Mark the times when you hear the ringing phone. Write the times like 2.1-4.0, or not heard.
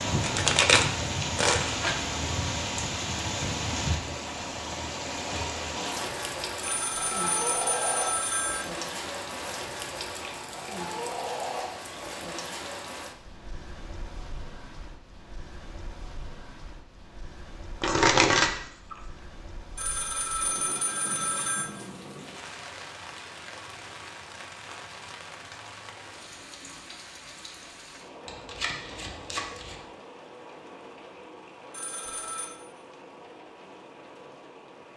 6.6-8.7, 19.8-21.7, 31.7-32.5.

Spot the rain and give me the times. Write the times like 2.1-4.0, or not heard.
0.0-34.9.